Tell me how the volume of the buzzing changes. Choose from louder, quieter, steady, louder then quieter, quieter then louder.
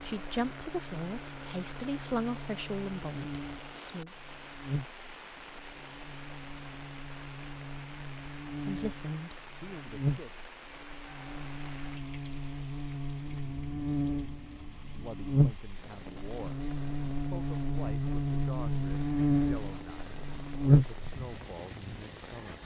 louder.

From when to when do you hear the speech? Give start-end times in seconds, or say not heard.
0.0-4.1, 8.7-10.4, 14.9-22.6.